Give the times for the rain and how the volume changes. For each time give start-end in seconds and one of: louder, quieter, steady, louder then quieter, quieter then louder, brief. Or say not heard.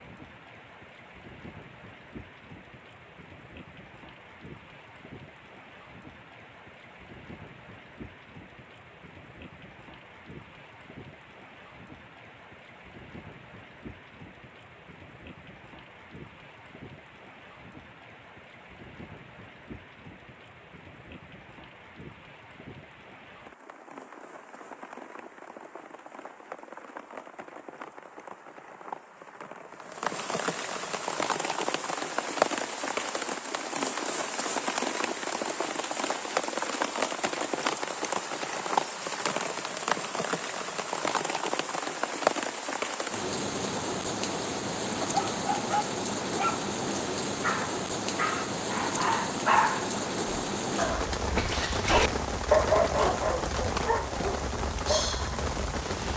0.0-56.1 louder.